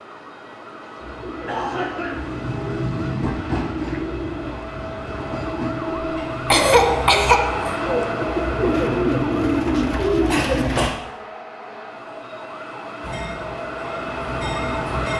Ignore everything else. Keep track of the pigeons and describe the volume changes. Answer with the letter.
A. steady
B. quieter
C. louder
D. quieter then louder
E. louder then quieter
C.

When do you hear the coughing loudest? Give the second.
7 s.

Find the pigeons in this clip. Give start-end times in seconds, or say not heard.
1.0-10.9.